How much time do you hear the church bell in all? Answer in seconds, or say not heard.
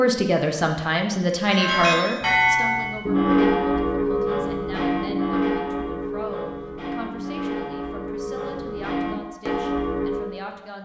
9 s.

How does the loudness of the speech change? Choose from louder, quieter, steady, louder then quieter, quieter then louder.
quieter.